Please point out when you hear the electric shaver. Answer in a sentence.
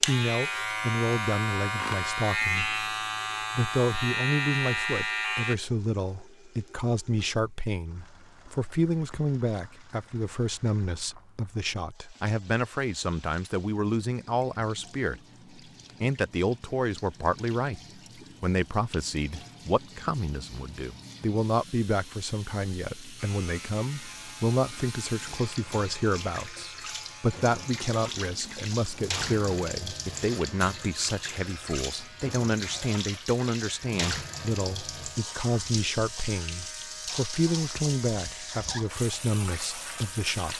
You can hear the electric shaver from 0.0 to 5.5 s and from 23.1 to 40.5 s.